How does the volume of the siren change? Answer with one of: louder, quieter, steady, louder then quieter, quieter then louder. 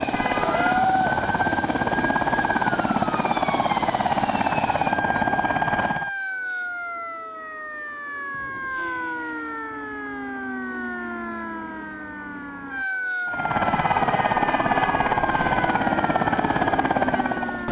steady.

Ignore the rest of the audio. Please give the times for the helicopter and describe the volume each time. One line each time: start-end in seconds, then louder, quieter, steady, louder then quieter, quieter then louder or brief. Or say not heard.
0.0-6.1 steady
13.2-17.6 steady.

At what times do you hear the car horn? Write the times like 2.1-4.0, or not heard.
0.1-0.9, 13.7-15.7.